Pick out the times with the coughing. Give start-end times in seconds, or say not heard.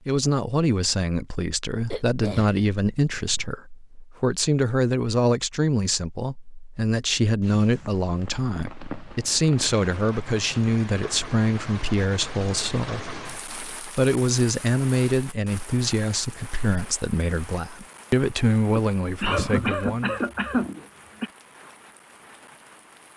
1.9-3.5, 18.8-21.3.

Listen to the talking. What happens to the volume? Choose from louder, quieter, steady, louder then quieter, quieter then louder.
steady.